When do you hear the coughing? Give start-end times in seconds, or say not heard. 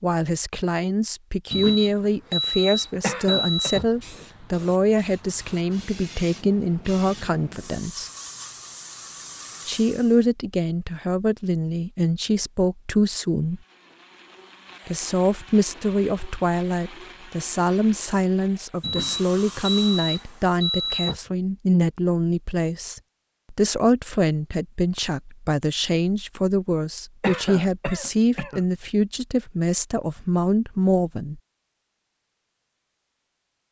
3.0-3.7, 27.2-28.6.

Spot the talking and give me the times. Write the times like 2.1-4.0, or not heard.
0.0-8.1, 9.7-13.6, 14.8-31.4.